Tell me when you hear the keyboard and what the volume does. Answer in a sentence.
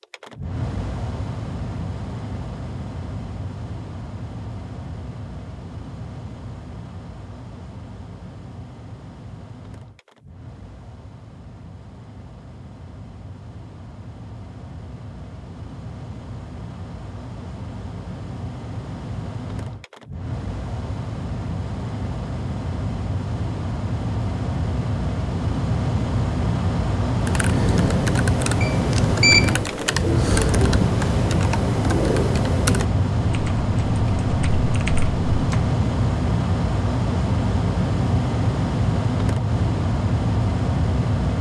You can hear the keyboard from 27.2 to 35.8 s, getting quieter.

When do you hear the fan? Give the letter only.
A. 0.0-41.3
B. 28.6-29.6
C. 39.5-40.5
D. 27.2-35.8
A.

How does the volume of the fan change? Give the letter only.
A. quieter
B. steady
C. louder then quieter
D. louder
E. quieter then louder
E.